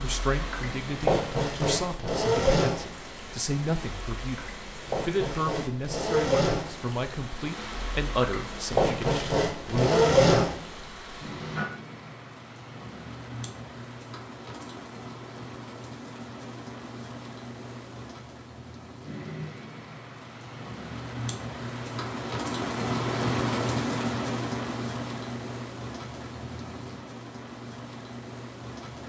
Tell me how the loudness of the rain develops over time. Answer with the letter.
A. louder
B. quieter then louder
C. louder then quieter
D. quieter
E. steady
A.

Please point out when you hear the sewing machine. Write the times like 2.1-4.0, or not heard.
0.0-11.7.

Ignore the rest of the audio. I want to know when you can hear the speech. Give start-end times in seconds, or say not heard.
0.0-10.3.